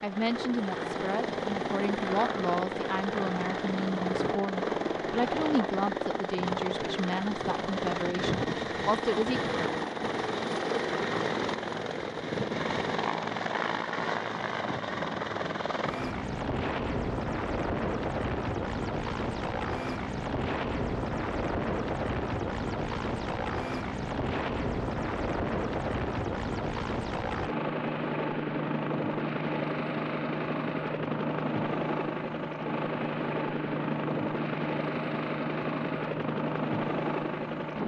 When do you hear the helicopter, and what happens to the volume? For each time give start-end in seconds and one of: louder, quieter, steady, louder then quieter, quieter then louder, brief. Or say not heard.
0.0-37.8 steady.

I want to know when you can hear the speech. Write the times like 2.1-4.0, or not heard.
0.0-9.4.